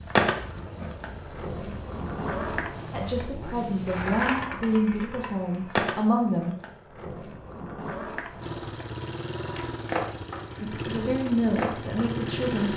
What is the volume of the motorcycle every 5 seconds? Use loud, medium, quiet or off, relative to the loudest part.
medium, loud, loud.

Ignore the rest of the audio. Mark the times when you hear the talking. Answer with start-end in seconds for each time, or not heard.
2.9-6.5, 10.6-12.7.